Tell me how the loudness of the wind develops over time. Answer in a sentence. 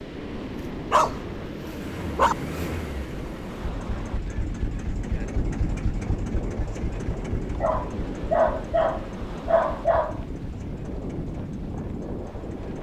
The volume of the wind stays about the same.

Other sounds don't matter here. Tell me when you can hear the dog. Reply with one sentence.
The dog can be heard from 0.3 to 2.4 s and from 7.6 to 10.2 s.